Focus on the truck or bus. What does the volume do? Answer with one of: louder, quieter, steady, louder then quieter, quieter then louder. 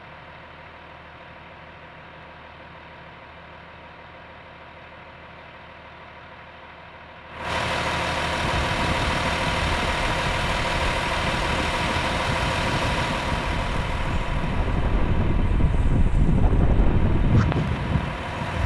louder then quieter.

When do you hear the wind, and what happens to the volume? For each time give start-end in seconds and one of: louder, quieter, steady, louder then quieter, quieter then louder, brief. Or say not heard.
8.3-18.6 louder.